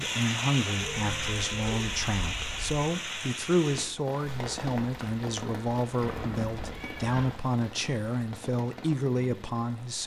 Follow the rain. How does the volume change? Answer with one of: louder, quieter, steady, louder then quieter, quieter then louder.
quieter.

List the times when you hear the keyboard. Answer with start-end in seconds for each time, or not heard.
not heard.